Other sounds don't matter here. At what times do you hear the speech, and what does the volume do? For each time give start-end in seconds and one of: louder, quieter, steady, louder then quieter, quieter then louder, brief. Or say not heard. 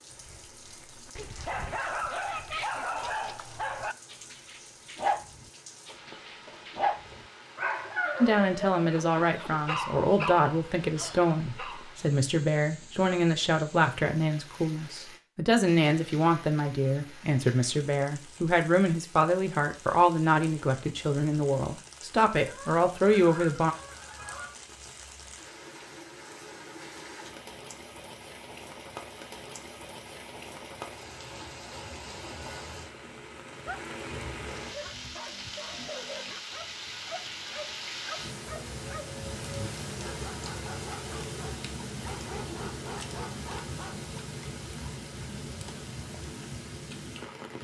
8.2-23.8 steady.